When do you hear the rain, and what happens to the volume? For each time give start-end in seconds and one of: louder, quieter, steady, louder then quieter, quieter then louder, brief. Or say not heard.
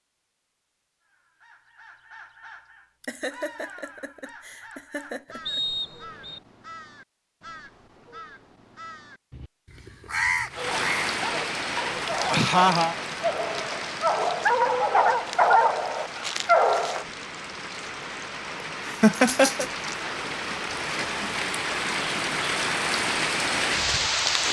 10.5-24.4 quieter then louder.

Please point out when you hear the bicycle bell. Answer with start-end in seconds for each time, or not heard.
not heard.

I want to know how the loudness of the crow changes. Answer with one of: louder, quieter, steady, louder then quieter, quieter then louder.
louder.